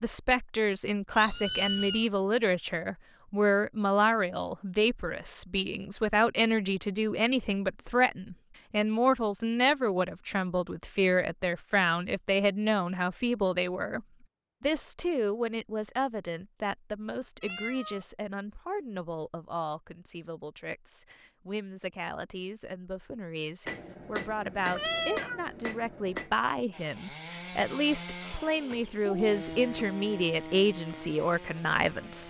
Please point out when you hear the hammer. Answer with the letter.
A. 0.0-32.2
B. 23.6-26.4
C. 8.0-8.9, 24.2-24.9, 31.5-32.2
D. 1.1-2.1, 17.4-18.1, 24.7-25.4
B.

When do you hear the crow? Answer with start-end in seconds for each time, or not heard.
not heard.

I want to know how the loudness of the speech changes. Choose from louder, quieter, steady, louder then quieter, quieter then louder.
quieter then louder.